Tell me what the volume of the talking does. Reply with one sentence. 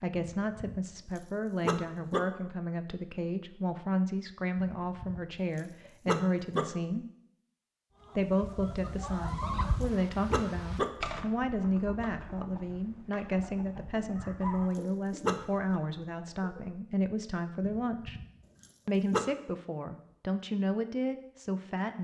The volume of the talking stays about the same.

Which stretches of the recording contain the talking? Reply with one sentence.
The talking can be heard from 0.0 to 7.0 s, from 8.2 to 18.1 s and from 18.9 to 21.9 s.